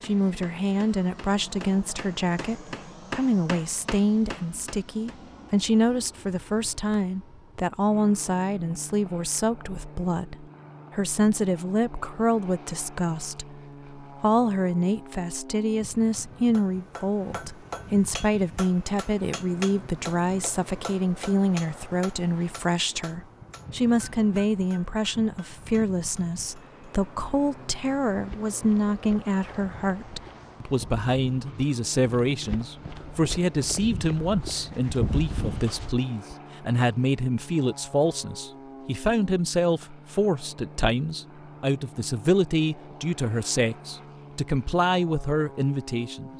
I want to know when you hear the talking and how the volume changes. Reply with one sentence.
The talking can be heard from 0.0 to 46.3 s, at a steady volume.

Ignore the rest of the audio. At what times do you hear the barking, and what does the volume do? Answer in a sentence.
You can't hear the barking here.